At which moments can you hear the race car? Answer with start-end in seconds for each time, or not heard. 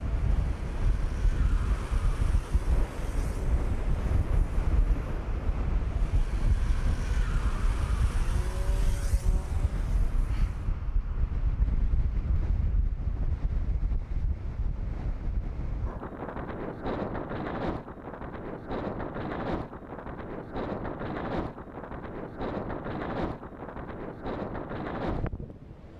0.0-10.8.